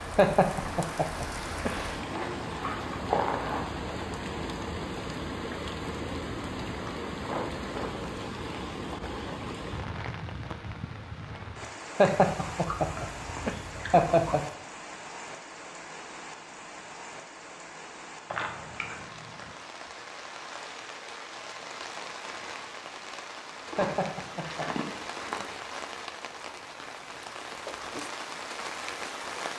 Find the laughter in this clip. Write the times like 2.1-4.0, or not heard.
0.1-1.8, 11.9-14.4, 23.8-24.7.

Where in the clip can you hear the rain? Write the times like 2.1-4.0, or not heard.
0.0-29.5.